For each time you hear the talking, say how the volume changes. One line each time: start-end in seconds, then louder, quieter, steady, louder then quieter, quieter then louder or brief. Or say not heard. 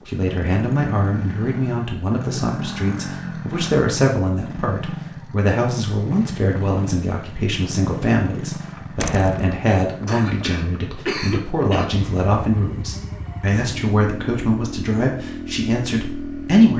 0.1-16.7 steady.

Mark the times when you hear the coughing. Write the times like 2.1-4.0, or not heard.
10.1-11.8.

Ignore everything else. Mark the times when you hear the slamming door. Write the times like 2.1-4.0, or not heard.
9.0-9.5.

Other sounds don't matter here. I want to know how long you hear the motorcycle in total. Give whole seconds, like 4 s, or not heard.
17 s.